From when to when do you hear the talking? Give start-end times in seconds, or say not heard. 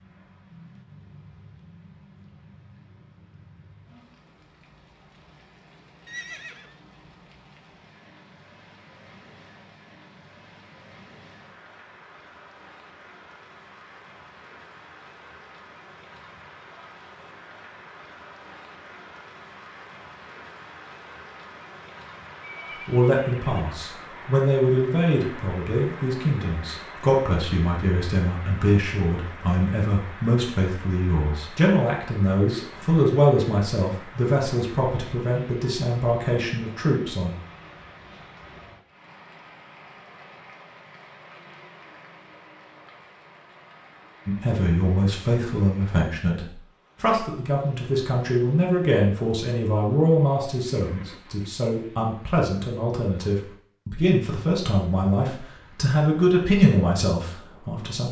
22.9-37.3, 44.2-58.0.